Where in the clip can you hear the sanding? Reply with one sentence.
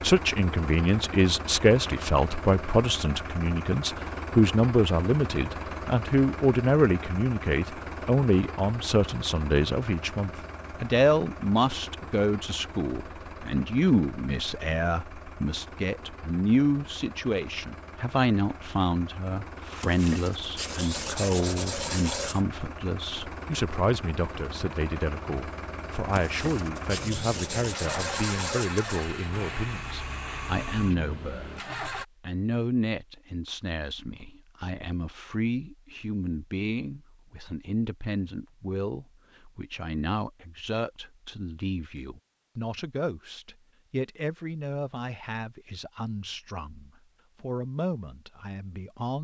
The sanding can be heard from 19.8 to 22.4 s and from 26.1 to 29.1 s.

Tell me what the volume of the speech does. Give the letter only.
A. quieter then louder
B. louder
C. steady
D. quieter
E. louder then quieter
D.